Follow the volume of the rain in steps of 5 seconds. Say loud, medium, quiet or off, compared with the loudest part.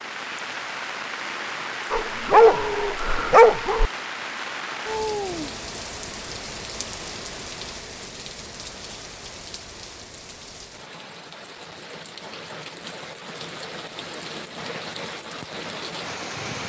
loud, loud, medium, loud.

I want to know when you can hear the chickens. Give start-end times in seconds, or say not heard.
not heard.